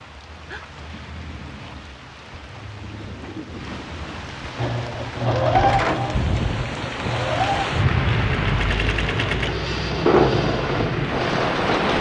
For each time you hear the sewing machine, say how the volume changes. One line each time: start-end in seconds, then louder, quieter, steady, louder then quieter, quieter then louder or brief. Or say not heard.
4.5-11.8 quieter then louder.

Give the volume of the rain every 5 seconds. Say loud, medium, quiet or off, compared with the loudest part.
quiet, loud, loud.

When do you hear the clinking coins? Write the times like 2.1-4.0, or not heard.
not heard.